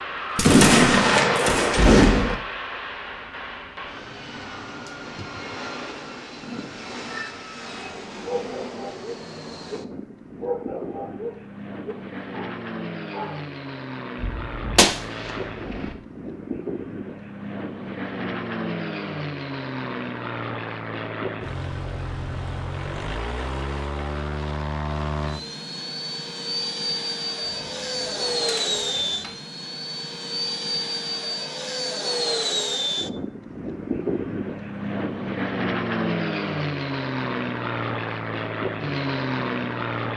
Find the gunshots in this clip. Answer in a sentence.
You can hear the gunshots from 0.3 to 2.4 s, from 14.2 to 15.9 s and from 27.4 to 29.4 s.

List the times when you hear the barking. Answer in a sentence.
You can hear the barking from 6.4 to 7.4 s and from 8.2 to 13.4 s.